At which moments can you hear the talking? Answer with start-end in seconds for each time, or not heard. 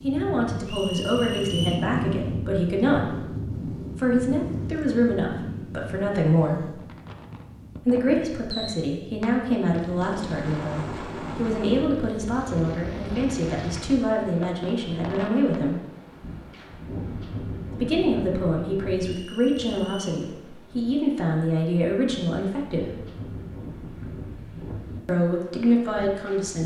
0.0-6.8, 7.8-15.8, 17.7-22.9, 25.1-26.6.